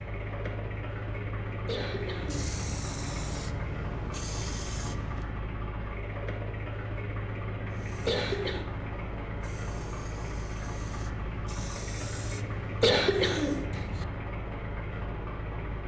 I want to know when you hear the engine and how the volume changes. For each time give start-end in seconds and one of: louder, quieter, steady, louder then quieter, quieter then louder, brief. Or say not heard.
0.0-15.8 steady.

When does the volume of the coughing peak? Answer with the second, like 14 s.
13 s.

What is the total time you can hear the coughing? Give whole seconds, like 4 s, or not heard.
3 s.